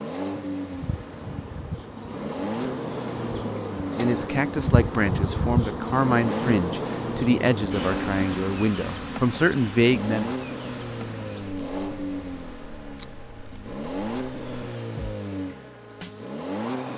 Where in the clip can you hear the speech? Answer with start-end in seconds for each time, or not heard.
4.0-10.3.